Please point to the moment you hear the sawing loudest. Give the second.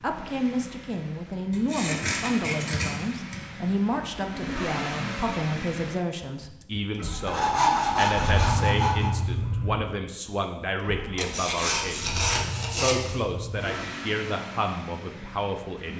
8 s.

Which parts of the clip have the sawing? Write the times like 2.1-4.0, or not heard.
1.5-3.5, 7.2-9.2, 11.2-13.2.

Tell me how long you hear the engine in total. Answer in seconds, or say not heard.
16 s.